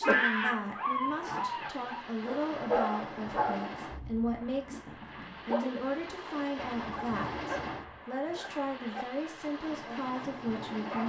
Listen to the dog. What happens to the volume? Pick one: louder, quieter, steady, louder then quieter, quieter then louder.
quieter.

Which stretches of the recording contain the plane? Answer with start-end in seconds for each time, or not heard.
0.0-11.0.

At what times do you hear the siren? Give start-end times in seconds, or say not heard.
not heard.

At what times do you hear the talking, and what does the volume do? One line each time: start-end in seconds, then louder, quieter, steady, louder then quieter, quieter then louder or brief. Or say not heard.
0.0-11.0 steady.